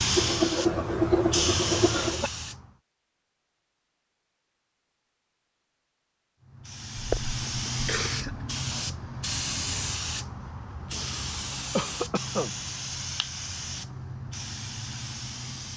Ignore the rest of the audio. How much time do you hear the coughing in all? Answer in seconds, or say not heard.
5 s.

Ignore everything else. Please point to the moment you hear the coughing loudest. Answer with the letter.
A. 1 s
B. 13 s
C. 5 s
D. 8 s
A.